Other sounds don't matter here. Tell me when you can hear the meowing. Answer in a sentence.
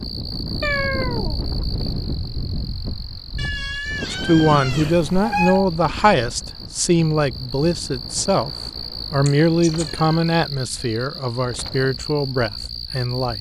The meowing can be heard from 0.6 to 1.9 s, from 4.8 to 5.7 s and from 9.2 to 10.2 s.